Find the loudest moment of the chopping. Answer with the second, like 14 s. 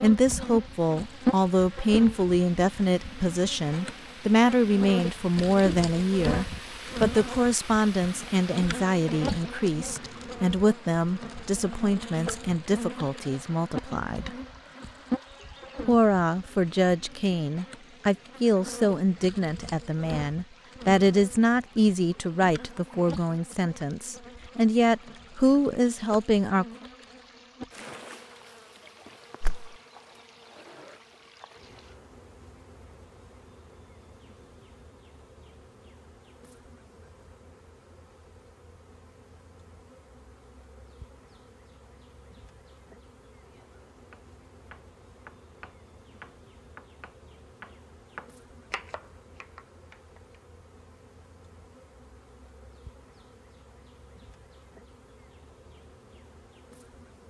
49 s.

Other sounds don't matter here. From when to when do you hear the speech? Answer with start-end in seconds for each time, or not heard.
0.0-14.3, 15.8-26.6.